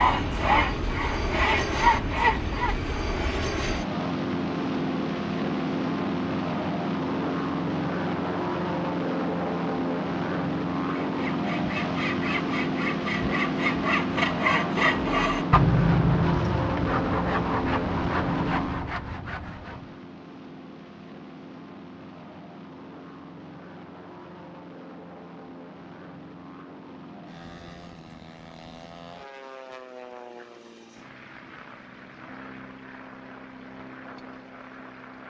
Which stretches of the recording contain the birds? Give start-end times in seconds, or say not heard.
not heard.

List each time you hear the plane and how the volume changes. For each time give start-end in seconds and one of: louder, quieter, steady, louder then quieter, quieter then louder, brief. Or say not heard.
0.0-35.2 quieter.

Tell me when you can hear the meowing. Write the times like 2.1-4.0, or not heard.
not heard.